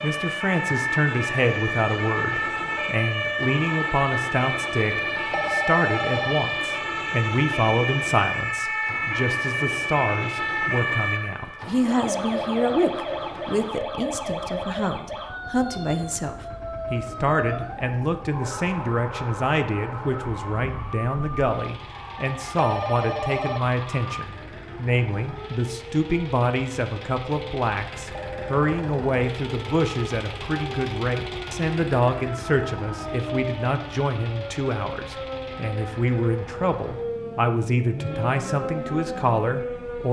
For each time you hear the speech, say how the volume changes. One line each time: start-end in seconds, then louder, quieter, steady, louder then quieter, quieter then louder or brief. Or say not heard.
0.0-40.0 steady.